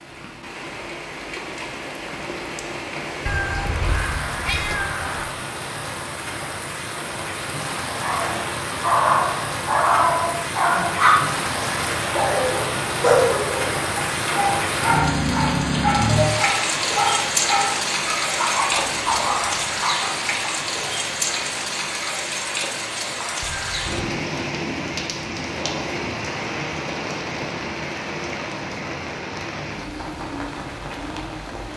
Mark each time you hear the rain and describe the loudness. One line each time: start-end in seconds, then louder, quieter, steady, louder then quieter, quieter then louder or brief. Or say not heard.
0.0-31.7 louder then quieter.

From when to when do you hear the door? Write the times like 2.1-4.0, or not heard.
not heard.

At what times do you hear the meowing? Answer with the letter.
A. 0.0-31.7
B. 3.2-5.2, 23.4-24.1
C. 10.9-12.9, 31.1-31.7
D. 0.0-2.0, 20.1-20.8
B.